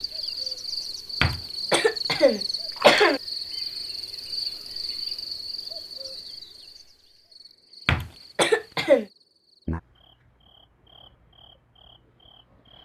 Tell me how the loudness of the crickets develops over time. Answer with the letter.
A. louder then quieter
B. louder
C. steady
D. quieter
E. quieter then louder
D.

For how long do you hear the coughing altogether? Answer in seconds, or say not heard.
3 s.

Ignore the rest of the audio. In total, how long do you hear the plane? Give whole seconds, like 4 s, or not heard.
not heard.